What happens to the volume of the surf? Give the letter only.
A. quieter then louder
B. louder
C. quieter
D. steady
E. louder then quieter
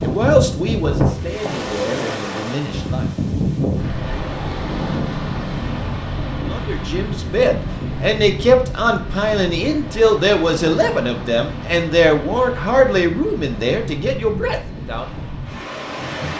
C.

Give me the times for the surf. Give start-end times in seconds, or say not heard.
0.0-16.3.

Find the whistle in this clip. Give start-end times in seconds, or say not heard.
not heard.